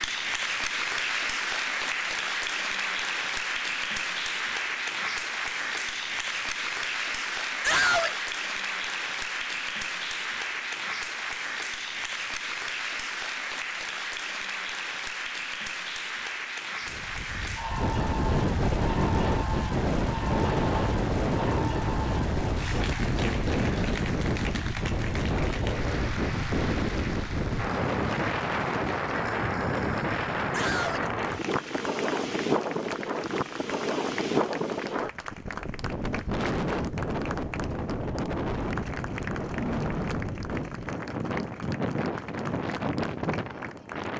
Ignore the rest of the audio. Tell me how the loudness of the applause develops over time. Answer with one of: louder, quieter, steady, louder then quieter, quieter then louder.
quieter.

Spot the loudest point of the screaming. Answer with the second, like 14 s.
8 s.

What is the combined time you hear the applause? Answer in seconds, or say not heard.
44 s.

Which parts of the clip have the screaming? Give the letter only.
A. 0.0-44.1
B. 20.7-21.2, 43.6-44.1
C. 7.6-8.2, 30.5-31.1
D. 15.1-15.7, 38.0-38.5
C.